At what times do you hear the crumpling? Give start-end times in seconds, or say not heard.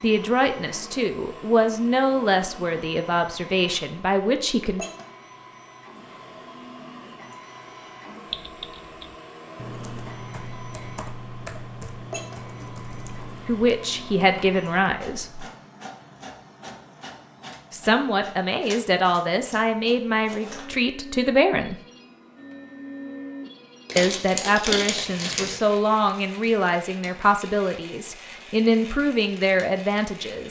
23.9-25.6.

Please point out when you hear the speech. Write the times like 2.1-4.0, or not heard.
0.0-4.8, 13.4-15.4, 17.7-21.8, 23.9-30.4.